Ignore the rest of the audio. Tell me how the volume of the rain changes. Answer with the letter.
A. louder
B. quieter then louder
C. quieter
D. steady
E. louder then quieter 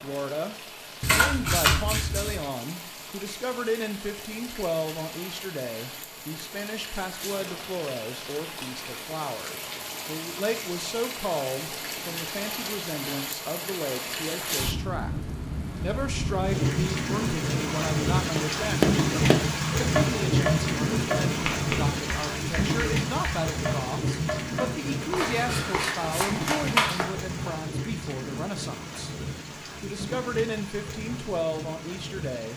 E.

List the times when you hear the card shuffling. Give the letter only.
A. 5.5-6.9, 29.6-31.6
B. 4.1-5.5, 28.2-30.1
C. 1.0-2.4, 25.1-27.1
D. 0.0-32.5
C.